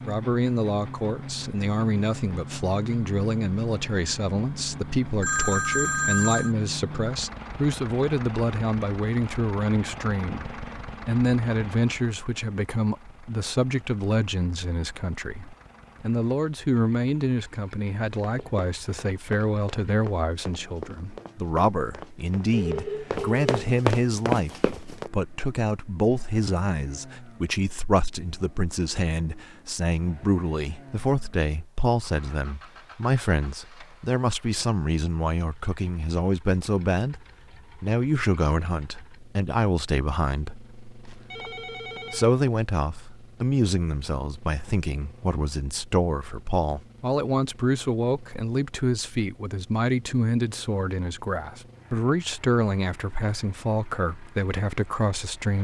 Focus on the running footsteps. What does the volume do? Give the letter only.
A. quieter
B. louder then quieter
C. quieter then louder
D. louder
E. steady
D.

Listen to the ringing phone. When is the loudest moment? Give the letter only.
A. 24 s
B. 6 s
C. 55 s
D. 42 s
B.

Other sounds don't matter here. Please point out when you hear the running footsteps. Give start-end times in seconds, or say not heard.
18.1-25.1.